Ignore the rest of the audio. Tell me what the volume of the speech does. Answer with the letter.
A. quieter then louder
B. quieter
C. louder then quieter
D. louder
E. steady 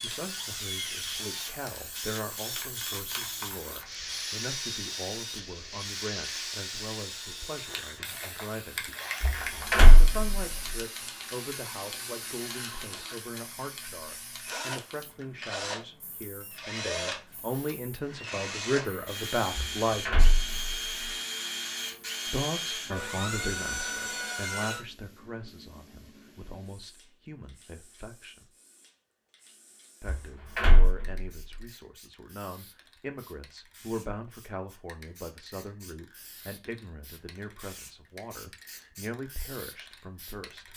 C.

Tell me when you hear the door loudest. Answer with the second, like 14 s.
10 s.